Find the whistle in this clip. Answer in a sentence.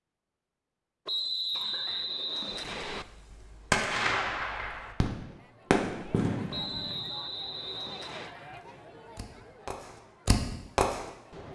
You can hear the whistle from 1.1 to 3.0 s and from 6.5 to 8.3 s.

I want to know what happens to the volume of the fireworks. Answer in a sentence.
The loudness of the fireworks goes down, then up.